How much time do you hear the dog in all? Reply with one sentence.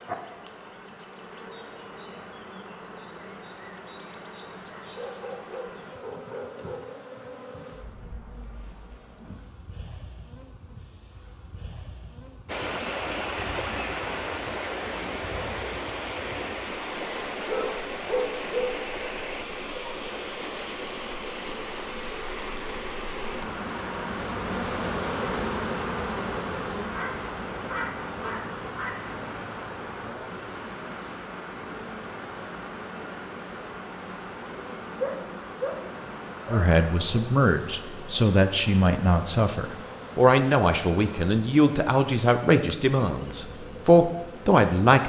You can hear the dog for 7 seconds altogether.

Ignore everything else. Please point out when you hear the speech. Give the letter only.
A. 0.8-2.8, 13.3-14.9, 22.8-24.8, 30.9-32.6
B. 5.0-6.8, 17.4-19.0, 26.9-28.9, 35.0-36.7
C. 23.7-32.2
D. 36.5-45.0
D.